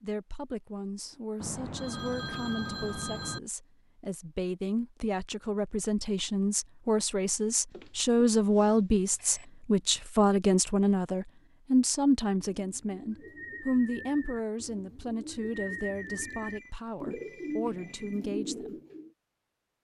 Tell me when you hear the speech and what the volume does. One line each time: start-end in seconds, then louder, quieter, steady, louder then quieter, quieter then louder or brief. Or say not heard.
0.0-18.8 louder then quieter.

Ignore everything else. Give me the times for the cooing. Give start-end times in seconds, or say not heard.
12.5-19.1.